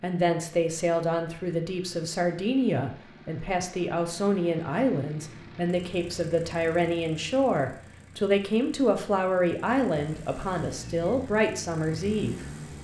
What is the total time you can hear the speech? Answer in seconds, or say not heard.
13 s.